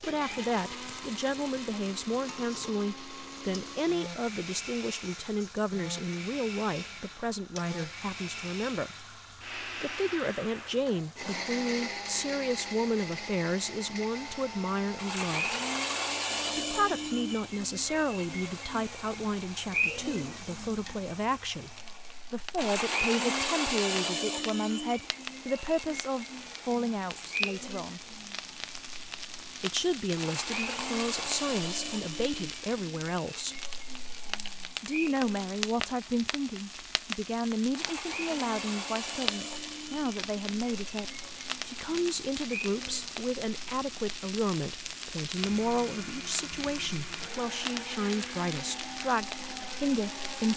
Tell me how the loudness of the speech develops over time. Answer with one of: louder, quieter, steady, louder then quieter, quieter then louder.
steady.